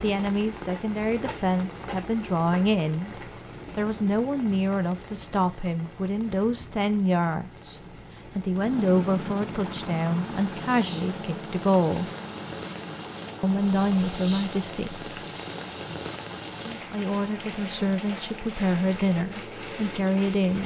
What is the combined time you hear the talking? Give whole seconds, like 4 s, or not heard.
17 s.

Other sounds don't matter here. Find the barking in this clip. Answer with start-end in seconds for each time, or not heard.
not heard.